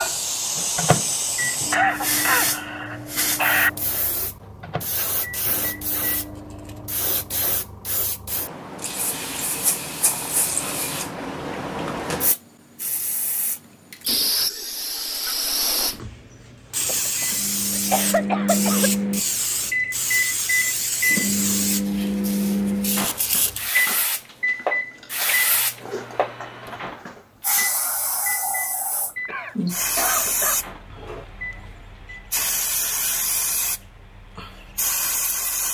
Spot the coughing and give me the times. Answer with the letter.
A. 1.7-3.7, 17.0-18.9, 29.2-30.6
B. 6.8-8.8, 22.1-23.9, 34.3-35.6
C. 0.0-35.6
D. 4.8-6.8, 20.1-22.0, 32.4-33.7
A.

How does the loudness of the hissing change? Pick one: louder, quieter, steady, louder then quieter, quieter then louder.
steady.